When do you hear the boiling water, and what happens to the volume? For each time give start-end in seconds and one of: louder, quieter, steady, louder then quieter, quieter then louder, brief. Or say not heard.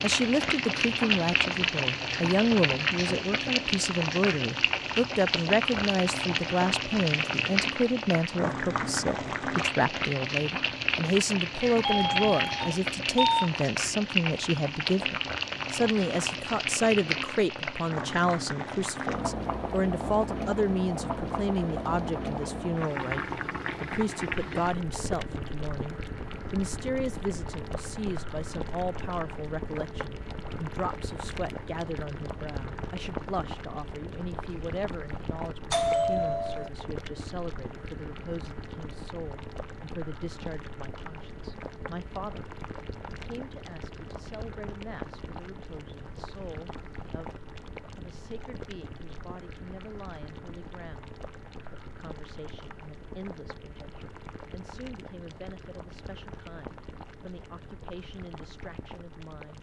0.0-59.5 quieter.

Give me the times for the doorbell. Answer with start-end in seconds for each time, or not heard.
11.7-13.5, 35.7-36.7.